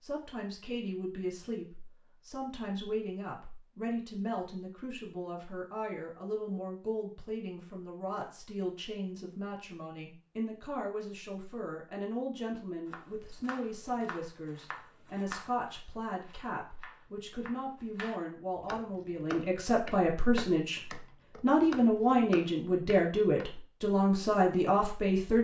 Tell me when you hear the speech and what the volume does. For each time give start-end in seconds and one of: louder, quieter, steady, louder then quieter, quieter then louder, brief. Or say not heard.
0.0-25.3 louder.